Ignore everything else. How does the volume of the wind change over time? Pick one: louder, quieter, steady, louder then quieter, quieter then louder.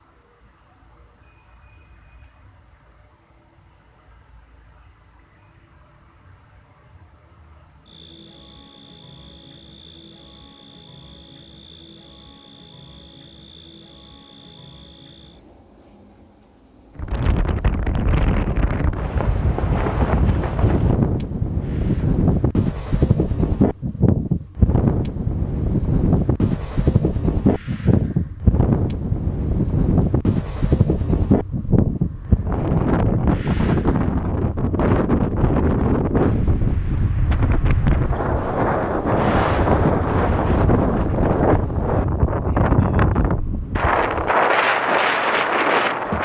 steady.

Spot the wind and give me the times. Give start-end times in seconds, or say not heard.
16.9-46.2.